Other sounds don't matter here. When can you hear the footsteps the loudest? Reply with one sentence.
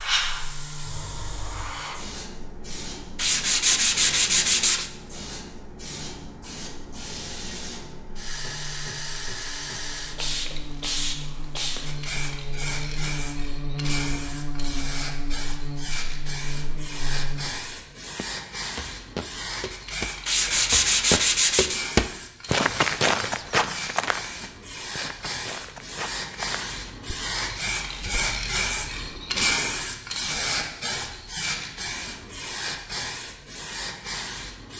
The loudest moment of the footsteps is at 23 seconds.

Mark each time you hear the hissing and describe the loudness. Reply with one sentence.
You can hear the hissing from 0.0 to 34.7 s, getting louder.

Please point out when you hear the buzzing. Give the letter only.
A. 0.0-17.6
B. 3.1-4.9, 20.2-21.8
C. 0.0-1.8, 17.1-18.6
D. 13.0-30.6
A.